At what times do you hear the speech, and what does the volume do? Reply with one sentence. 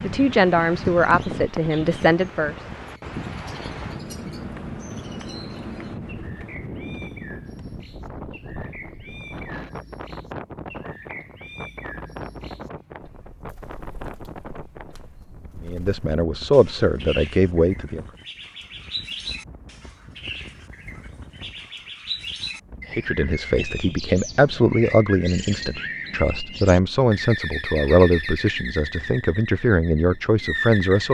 You can hear the speech briefly from 0.0 to 2.5 s; briefly from 15.6 to 18.1 s; and from 22.9 to 31.0 s, at a steady volume.